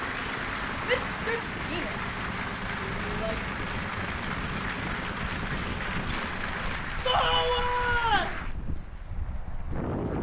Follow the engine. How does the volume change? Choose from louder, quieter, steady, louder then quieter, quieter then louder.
steady.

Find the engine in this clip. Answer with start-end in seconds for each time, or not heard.
0.0-6.8.